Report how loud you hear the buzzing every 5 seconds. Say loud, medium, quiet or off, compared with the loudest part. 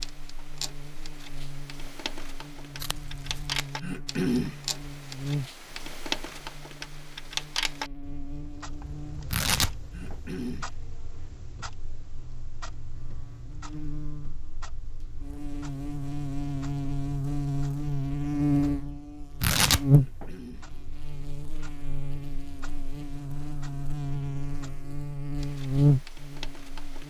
quiet, quiet, quiet, loud, medium, loud.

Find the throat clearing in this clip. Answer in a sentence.
You can hear the throat clearing from 3.8 to 4.5 s, from 9.9 to 10.7 s and from 19.9 to 20.7 s.